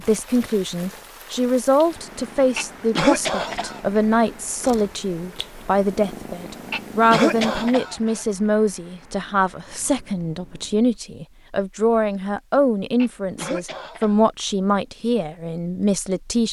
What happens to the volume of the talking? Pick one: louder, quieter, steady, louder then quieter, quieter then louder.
steady.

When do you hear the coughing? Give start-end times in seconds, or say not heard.
2.5-3.8, 6.7-8.2, 12.9-14.2.